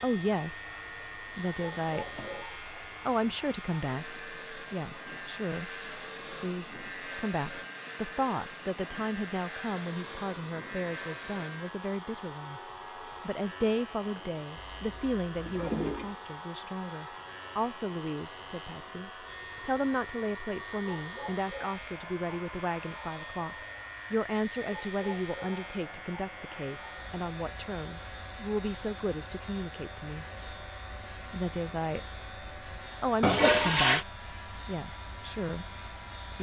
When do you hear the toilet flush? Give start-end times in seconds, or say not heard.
1.7-2.5, 14.6-16.1, 33.2-34.0.